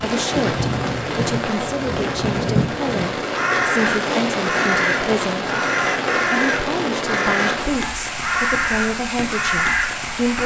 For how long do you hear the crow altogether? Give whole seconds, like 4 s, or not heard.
7 s.